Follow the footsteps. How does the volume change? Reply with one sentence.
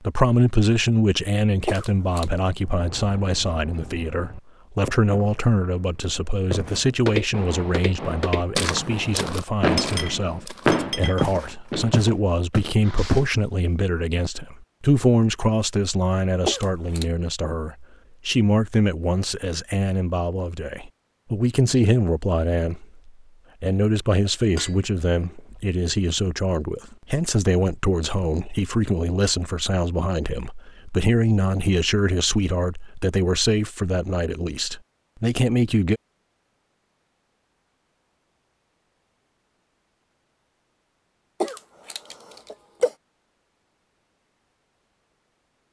The volume of the footsteps goes down, then up.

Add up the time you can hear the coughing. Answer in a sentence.
The coughing can be heard for 3 seconds in total.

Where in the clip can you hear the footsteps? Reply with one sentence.
The footsteps can be heard from 6.5 to 13.2 s.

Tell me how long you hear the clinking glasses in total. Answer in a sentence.
You can hear the clinking glasses for 3 seconds altogether.